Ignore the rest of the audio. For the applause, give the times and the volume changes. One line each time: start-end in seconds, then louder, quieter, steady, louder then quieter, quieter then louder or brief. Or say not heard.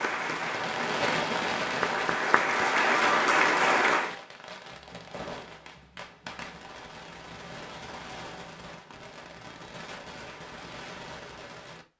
0.0-4.2 louder.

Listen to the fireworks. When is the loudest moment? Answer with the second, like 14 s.
1 s.